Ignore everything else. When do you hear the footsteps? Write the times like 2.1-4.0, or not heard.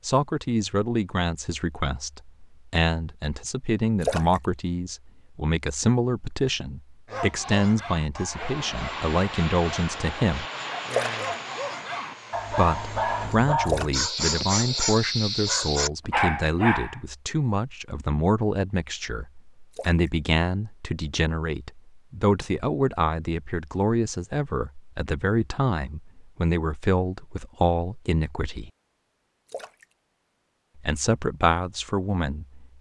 not heard.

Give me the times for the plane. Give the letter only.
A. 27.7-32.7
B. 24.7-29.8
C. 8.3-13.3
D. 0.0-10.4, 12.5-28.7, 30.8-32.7
C.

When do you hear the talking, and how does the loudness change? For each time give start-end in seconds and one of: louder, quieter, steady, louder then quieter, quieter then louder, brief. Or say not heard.
0.0-10.4 steady
12.5-28.7 steady
30.8-32.7 brief.